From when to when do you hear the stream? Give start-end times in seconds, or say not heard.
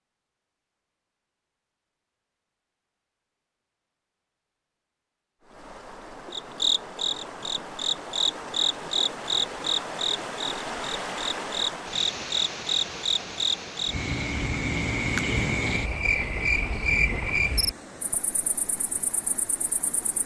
5.4-20.2.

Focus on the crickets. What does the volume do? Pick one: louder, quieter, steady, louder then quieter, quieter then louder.
steady.